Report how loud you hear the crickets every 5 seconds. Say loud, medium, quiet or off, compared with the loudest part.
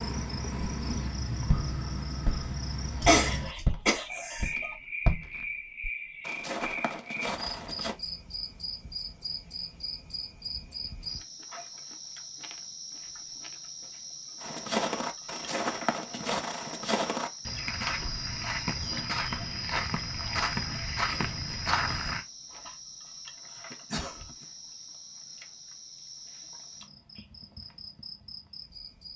loud, loud, medium, medium, medium, medium.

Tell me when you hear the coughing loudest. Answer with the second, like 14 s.
3 s.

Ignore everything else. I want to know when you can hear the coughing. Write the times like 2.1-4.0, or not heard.
3.0-4.8, 23.7-24.4.